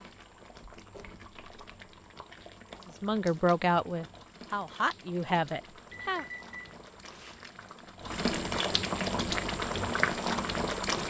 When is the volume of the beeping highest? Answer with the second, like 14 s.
6 s.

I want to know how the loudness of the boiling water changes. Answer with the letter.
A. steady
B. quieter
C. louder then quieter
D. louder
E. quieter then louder
D.